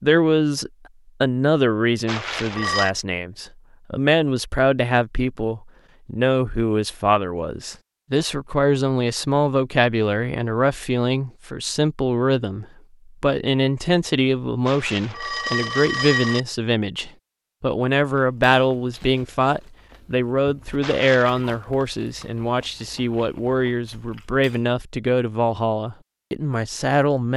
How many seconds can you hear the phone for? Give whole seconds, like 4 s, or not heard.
3 s.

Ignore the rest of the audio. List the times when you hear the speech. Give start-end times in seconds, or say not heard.
0.0-27.3.